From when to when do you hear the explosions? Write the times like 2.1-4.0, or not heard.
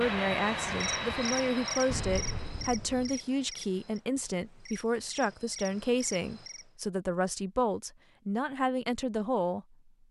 1.9-3.2.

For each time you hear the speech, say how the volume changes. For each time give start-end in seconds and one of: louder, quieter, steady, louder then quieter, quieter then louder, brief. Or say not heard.
0.0-9.7 steady.